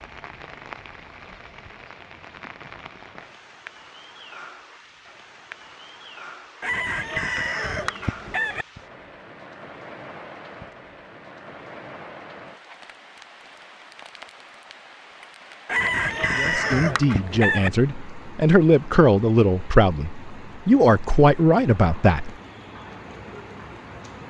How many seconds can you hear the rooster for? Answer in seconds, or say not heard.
4 s.